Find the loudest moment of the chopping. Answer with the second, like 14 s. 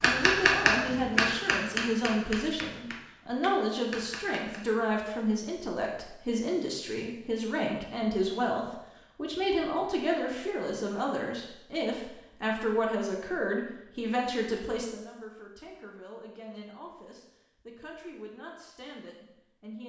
1 s.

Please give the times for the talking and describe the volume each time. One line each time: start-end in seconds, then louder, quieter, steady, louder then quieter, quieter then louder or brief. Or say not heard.
0.0-19.8 quieter.